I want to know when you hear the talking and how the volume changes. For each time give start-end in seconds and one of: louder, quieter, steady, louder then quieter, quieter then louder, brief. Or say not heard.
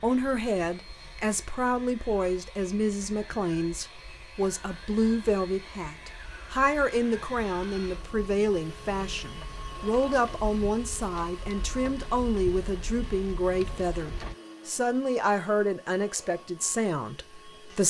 0.0-17.8 steady.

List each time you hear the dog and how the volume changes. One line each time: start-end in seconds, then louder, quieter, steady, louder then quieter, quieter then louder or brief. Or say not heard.
not heard.